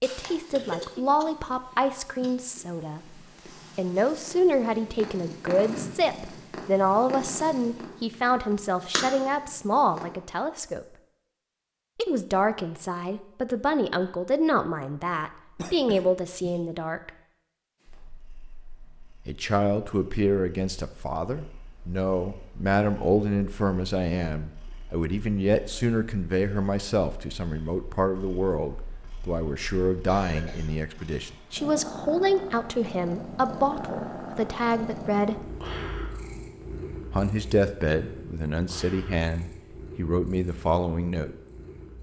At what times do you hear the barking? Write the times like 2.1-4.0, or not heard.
not heard.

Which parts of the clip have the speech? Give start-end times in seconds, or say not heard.
0.0-10.9, 11.9-17.1, 19.2-35.5, 37.1-41.4.